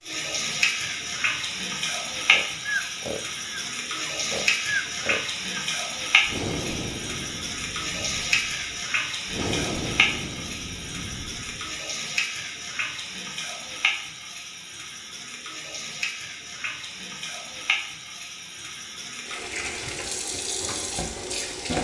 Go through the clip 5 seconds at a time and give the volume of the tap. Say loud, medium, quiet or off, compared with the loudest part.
loud, loud, loud, medium, loud.